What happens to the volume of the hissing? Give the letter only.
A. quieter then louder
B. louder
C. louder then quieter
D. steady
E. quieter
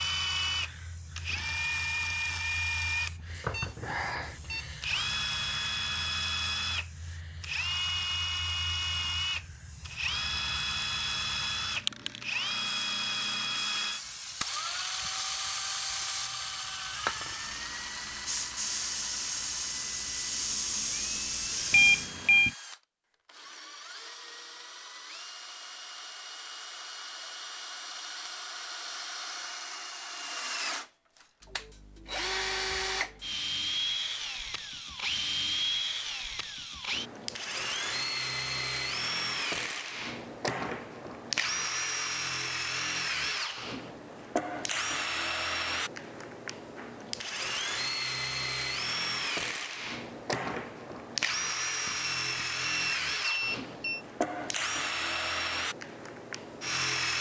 B.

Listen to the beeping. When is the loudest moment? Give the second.
22 s.